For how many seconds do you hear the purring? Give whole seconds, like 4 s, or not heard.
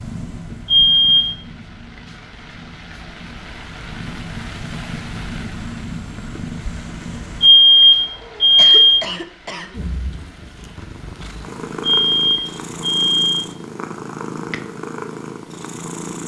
14 s.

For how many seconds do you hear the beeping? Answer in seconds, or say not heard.
4 s.